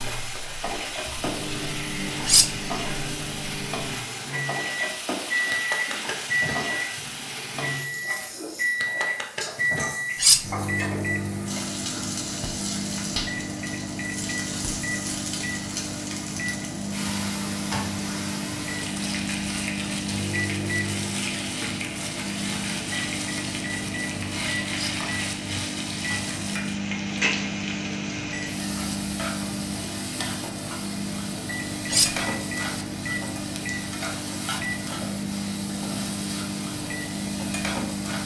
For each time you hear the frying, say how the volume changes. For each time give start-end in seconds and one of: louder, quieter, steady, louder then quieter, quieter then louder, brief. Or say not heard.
0.0-38.2 steady.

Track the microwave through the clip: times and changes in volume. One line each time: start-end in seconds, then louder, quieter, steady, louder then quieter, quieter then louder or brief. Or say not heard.
0.0-38.2 steady.